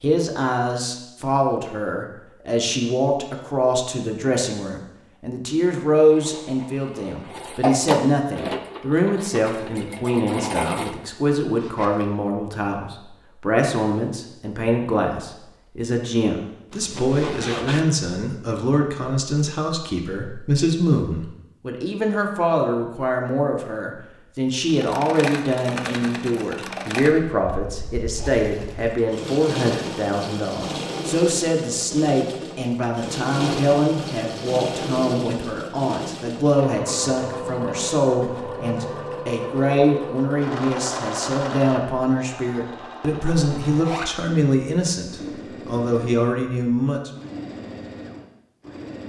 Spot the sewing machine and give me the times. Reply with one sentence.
You can hear the sewing machine from 6.0 to 10.9 s and from 24.6 to 49.0 s.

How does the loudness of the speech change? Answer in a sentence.
The loudness of the speech stays about the same.